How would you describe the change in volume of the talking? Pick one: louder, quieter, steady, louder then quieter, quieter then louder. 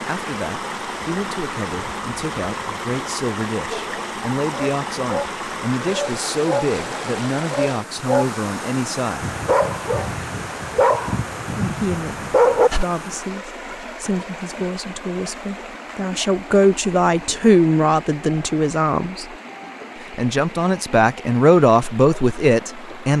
louder.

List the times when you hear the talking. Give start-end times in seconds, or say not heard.
0.1-9.2, 11.6-19.2, 20.1-23.1.